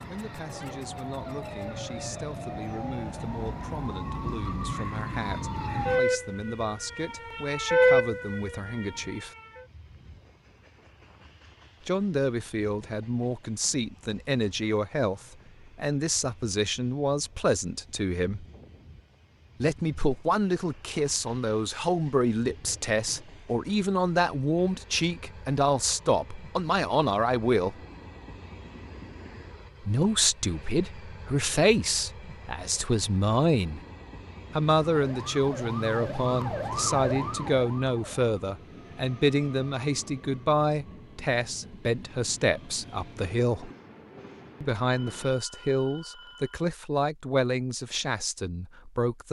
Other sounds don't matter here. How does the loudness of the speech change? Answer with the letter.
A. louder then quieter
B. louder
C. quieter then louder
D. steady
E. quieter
B.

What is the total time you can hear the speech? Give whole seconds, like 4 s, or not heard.
42 s.